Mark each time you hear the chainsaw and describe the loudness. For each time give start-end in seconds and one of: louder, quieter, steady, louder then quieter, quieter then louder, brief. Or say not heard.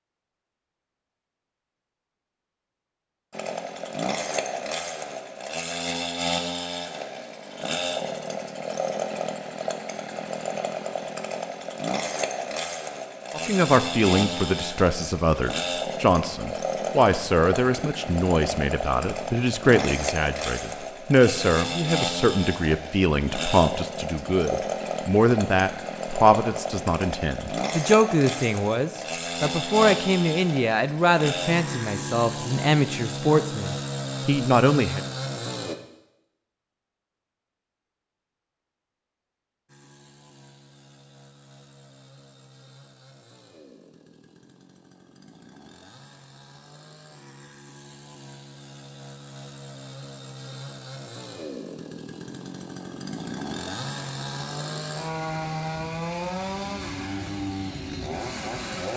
3.3-35.8 steady
39.6-58.9 louder.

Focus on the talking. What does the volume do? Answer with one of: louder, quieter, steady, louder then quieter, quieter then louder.
steady.